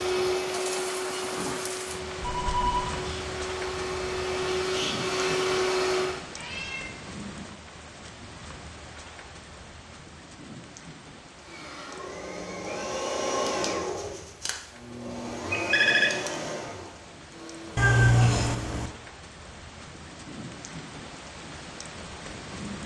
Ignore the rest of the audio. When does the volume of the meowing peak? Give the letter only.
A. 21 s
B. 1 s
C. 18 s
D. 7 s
C.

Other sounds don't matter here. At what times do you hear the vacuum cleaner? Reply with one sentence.
You can hear the vacuum cleaner from 0.0 to 6.2 s and from 11.3 to 19.0 s.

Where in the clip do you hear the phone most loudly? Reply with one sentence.
The volume of the phone peaks at 16 seconds.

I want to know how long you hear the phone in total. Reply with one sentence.
You can hear the phone for 2 seconds altogether.